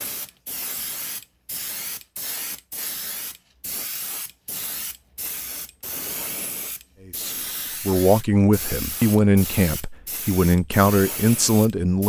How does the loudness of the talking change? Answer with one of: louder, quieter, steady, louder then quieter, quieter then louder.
steady.